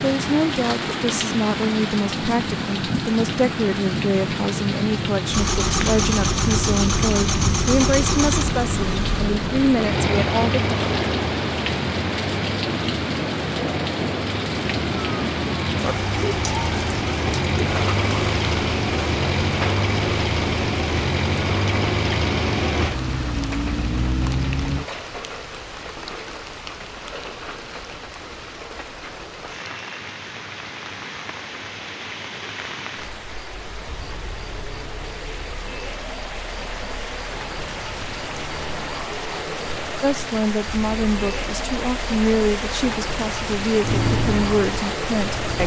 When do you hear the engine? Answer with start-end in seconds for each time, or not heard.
5.2-24.9, 43.8-45.6.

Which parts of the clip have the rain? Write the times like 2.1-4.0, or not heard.
0.0-45.6.